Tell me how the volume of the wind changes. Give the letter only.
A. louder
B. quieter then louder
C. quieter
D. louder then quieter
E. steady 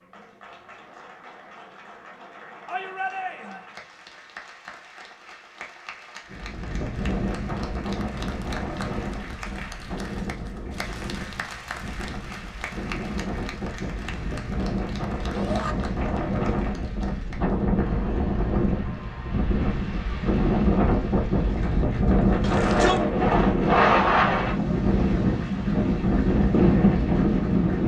A.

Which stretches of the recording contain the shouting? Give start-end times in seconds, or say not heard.
2.6-3.6, 15.3-15.8, 22.4-23.0.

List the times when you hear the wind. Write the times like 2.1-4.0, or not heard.
6.2-27.8.